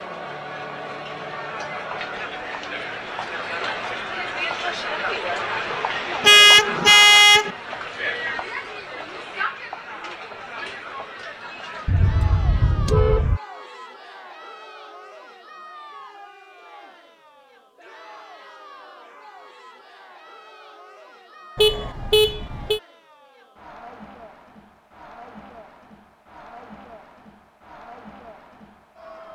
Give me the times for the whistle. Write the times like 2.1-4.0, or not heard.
not heard.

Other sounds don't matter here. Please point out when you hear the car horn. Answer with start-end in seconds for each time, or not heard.
6.2-7.5, 11.8-13.4, 21.6-22.8.